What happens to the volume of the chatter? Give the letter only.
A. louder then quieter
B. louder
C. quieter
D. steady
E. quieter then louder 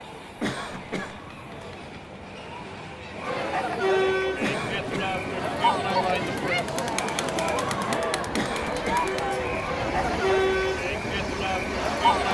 B.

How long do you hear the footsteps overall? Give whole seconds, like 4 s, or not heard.
not heard.